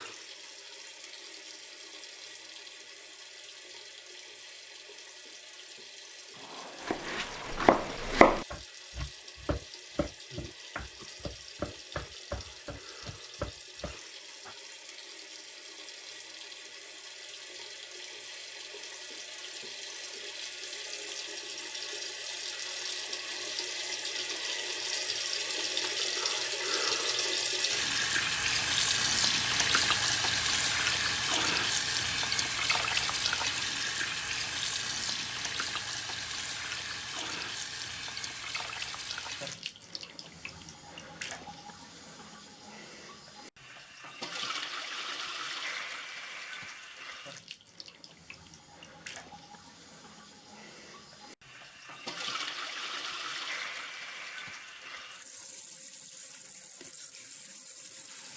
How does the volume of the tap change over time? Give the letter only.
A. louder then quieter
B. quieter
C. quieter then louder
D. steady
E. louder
A.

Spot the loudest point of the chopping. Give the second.
8 s.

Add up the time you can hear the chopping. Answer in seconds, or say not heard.
8 s.